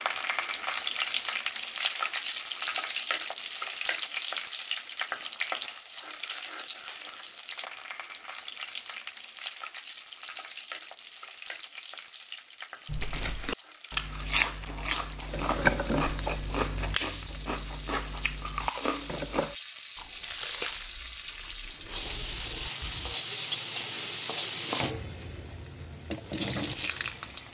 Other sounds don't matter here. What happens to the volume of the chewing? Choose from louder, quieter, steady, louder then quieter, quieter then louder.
quieter.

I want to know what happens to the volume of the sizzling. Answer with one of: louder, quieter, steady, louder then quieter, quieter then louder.
quieter then louder.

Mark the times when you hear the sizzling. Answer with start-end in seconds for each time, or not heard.
0.0-27.5.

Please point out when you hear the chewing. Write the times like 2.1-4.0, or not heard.
12.8-23.1.